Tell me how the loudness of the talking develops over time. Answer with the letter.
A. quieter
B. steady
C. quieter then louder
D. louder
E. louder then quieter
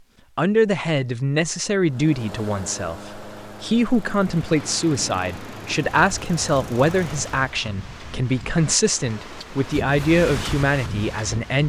B.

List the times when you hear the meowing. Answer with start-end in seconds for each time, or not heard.
not heard.